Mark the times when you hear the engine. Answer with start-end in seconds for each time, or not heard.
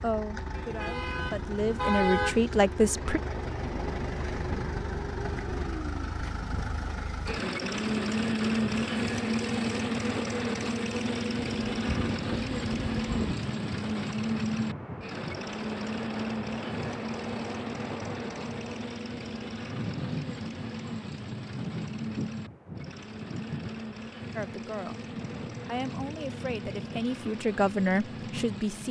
0.0-28.8.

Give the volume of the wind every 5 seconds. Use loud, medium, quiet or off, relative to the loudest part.
off, off, loud, loud, loud, medium.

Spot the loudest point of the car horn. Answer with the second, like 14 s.
2 s.